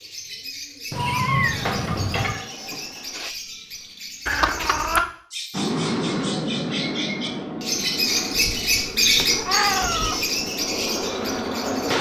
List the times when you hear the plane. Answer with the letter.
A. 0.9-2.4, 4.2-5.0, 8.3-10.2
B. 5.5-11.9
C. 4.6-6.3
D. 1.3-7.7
B.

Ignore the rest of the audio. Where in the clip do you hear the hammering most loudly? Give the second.
2 s.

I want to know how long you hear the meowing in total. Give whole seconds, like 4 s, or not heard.
4 s.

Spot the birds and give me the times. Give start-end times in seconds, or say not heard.
0.0-11.9.